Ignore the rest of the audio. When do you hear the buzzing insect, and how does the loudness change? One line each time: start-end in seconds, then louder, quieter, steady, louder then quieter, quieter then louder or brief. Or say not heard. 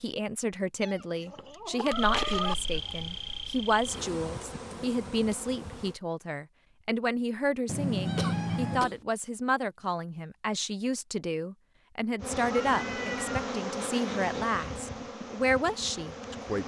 1.9-6.0 quieter
12.2-16.6 quieter.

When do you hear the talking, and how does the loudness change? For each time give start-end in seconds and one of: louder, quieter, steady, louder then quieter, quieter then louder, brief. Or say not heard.
0.0-16.6 steady.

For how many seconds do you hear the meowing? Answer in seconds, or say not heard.
4 s.